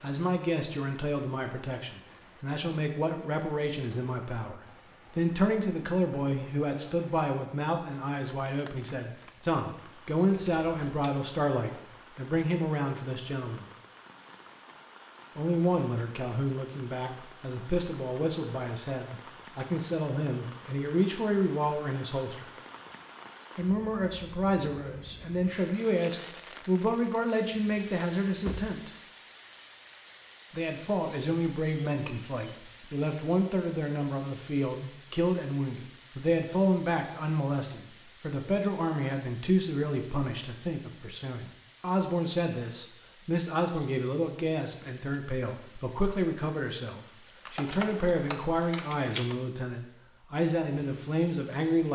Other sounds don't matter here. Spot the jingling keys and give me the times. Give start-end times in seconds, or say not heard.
10.4-11.1, 27.5-28.8, 47.5-49.4.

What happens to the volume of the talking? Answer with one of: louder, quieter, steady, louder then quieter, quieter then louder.
steady.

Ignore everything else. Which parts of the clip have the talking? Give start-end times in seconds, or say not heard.
0.0-13.7, 15.3-22.4, 23.6-28.9, 30.5-51.9.